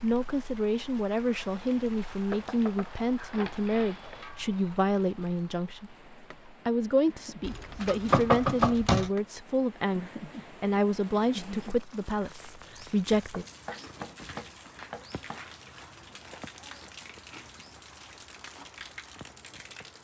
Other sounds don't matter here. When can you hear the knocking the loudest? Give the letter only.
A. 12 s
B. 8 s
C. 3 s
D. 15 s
B.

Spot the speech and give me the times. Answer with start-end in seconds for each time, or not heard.
0.0-13.4.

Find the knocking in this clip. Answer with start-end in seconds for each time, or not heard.
2.3-4.2, 7.5-9.1, 13.3-15.4.